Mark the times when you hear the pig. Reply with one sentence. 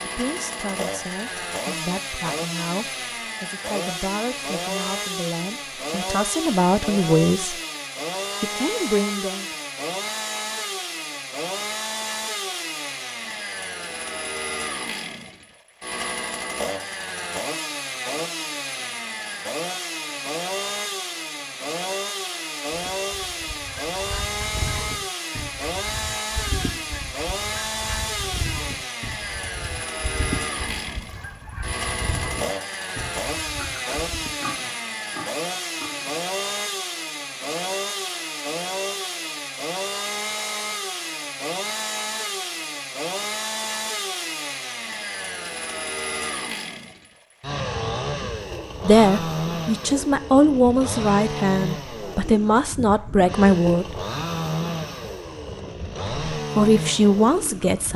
The pig can be heard from 33.5 to 36.2 s.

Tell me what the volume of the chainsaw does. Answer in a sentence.
The loudness of the chainsaw stays about the same.